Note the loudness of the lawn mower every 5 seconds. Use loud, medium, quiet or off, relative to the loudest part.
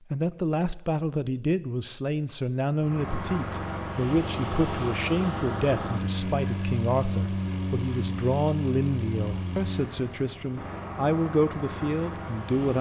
loud, loud, medium.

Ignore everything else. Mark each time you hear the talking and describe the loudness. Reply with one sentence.
The talking can be heard from 0.1 to 12.7 s, at a steady volume.